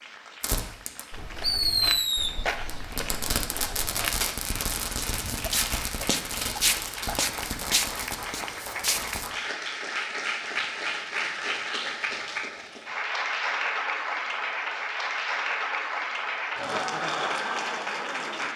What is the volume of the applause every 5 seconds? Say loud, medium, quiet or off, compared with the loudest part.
quiet, medium, loud, loud.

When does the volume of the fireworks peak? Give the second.
2 s.